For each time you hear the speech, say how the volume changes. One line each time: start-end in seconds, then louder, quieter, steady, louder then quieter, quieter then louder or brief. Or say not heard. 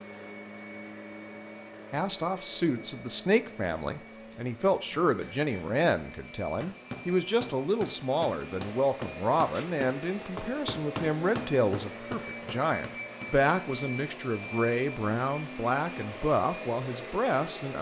1.9-17.7 steady.